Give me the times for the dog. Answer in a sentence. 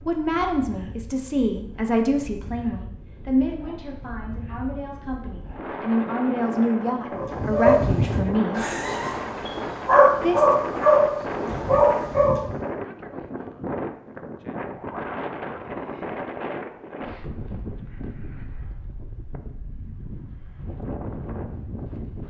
The dog can be heard from 7.1 to 12.7 s.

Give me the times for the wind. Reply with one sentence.
You can hear the wind from 0.0 to 22.2 s.